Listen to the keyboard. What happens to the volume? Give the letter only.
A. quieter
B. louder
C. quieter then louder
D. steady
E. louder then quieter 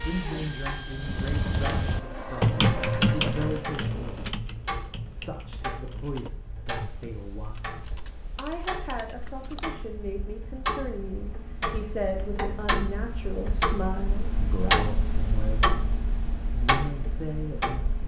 A.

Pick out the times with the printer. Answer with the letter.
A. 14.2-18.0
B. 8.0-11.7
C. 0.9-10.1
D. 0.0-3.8
D.